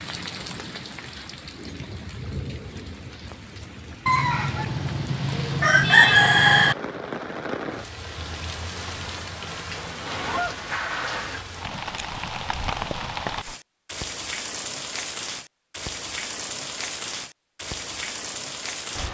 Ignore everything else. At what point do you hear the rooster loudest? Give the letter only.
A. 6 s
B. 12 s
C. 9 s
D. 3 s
A.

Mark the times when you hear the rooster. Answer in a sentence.
You can hear the rooster from 4.0 to 6.8 s.